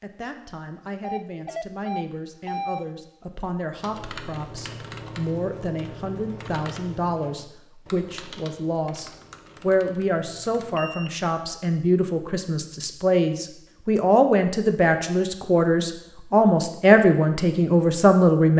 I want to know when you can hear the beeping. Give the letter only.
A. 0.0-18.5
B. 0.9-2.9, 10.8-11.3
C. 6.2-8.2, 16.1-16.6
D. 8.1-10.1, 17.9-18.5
B.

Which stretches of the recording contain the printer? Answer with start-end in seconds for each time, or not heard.
not heard.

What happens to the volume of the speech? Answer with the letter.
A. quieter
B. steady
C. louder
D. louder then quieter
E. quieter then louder
C.